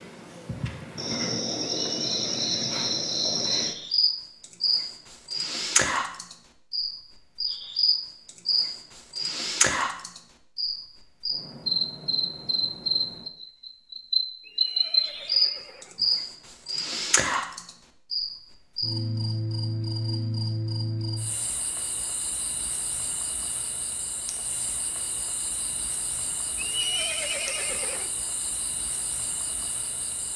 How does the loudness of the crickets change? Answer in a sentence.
The loudness of the crickets goes down.